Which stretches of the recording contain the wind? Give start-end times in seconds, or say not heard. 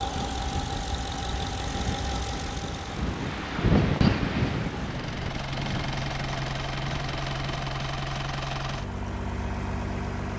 0.0-7.7.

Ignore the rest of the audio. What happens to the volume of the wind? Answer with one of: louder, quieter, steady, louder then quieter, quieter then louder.
louder then quieter.